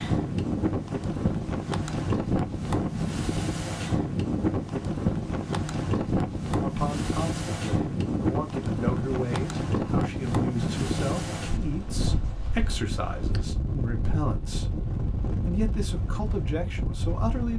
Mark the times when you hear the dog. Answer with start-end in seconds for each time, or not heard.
not heard.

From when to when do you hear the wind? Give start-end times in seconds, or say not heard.
0.0-17.5.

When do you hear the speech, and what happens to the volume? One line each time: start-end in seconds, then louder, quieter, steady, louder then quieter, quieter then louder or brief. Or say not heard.
6.6-17.5 steady.